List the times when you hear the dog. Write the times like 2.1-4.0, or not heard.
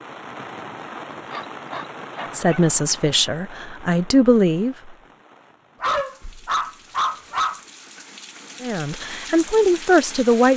1.3-2.6, 5.8-7.6.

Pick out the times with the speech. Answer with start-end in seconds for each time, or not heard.
2.4-5.0, 8.6-10.5.